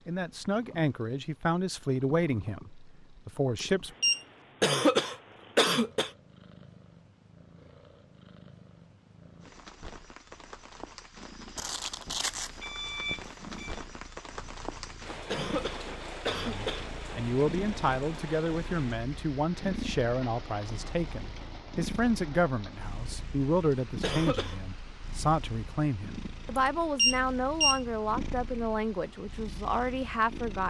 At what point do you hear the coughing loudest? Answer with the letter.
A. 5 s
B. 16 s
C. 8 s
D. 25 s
A.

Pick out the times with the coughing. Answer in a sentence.
The coughing can be heard from 4.6 to 6.1 s, from 15.3 to 16.9 s and from 24.0 to 24.6 s.